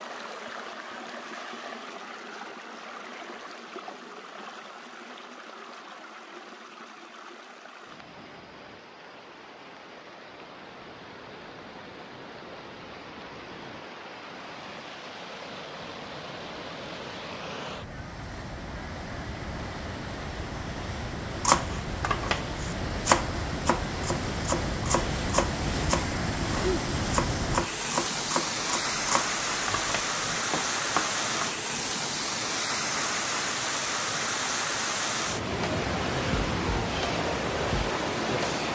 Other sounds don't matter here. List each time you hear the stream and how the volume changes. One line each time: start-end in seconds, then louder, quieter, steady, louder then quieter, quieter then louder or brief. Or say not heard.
0.0-38.7 louder.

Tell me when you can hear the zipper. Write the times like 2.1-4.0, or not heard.
not heard.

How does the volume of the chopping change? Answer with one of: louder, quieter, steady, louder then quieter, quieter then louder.
quieter.